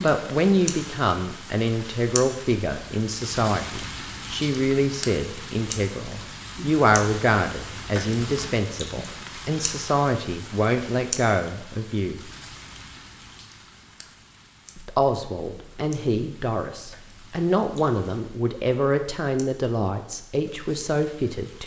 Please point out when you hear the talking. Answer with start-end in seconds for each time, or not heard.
0.0-12.2, 14.8-21.6.